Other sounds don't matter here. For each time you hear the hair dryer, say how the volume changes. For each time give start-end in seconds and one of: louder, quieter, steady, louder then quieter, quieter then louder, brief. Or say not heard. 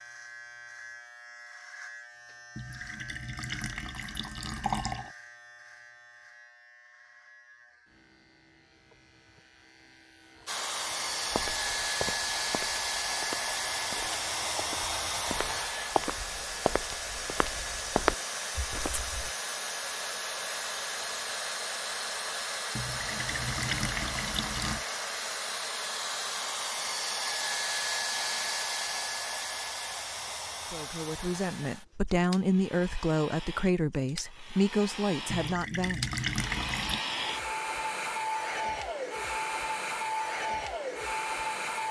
10.4-41.8 quieter then louder.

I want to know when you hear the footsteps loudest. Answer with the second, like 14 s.
18 s.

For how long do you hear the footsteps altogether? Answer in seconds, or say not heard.
8 s.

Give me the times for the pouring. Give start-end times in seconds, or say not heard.
2.5-5.2, 22.8-24.9, 35.3-37.0.